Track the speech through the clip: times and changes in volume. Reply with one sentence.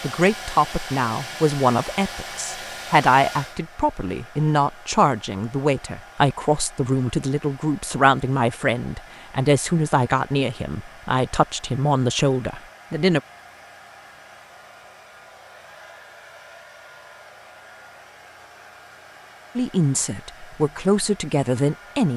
The speech can be heard from 0.0 to 13.2 s, at a steady volume; and briefly from 19.6 to 22.1 s.